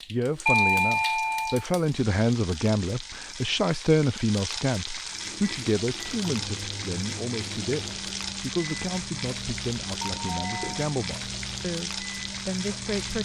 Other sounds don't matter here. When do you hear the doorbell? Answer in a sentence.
The doorbell can be heard from 0.5 to 1.6 s and from 10.0 to 10.9 s.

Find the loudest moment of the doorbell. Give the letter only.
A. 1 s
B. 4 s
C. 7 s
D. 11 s
A.